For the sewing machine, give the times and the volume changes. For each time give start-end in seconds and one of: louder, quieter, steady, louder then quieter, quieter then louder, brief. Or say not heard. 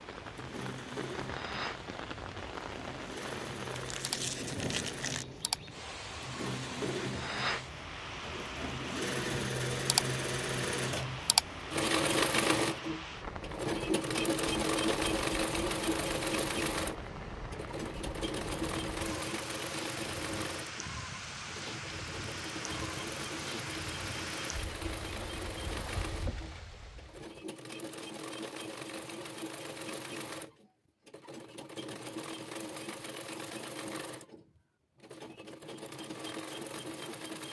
0.1-37.4 louder then quieter.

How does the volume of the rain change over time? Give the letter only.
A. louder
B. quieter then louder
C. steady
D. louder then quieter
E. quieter
C.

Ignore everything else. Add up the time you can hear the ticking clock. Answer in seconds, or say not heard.
not heard.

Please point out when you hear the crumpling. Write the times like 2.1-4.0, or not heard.
3.8-5.2.